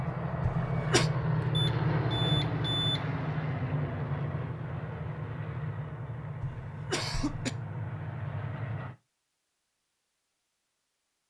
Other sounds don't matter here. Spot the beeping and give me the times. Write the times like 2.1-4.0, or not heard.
1.5-3.1.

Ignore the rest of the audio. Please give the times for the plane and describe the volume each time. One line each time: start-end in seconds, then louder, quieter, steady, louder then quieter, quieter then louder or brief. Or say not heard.
0.0-8.9 quieter.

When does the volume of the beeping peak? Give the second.
3 s.